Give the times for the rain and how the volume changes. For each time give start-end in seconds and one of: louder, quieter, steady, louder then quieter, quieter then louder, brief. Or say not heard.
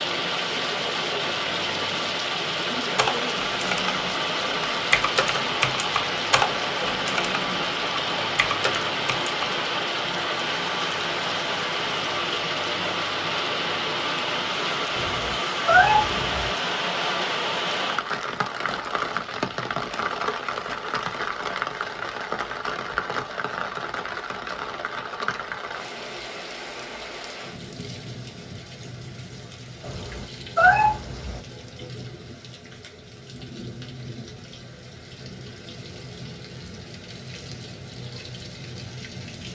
0.0-39.5 quieter.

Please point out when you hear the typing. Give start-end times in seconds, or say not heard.
2.9-9.5.